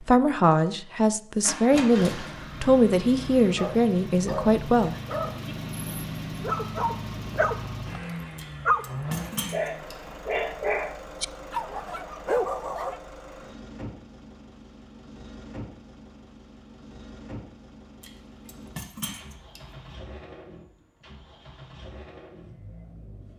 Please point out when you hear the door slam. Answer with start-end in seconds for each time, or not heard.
not heard.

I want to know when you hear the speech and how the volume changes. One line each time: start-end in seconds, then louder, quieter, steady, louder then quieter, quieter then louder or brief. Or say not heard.
0.0-5.0 steady.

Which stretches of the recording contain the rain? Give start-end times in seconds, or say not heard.
not heard.